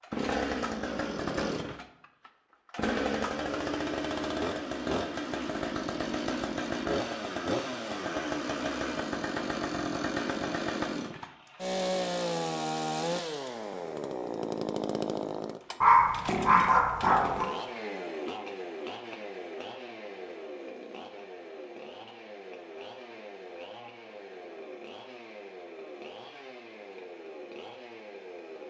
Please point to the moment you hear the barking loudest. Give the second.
16 s.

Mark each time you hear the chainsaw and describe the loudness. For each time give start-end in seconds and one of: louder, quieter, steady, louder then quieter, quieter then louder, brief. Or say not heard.
0.0-28.6 quieter.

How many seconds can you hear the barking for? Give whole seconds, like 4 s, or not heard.
2 s.